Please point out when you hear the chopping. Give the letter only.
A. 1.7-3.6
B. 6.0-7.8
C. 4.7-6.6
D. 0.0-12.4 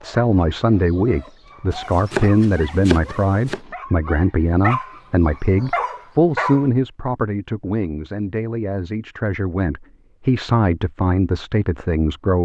A.